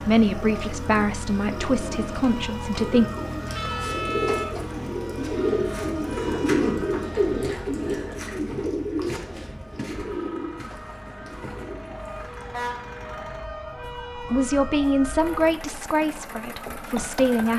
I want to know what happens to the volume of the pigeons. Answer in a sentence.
The volume of the pigeons goes up, then down.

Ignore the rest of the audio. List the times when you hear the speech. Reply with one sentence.
You can hear the speech from 0.0 to 3.1 s and from 14.2 to 17.5 s.